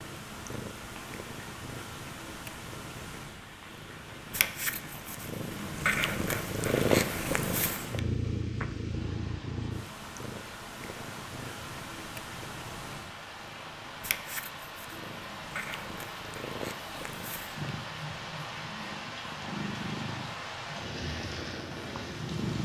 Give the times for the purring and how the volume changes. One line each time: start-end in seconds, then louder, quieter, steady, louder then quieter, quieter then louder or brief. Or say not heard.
0.0-22.5 louder then quieter.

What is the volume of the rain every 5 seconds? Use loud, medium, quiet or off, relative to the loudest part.
medium, medium, medium, loud, loud.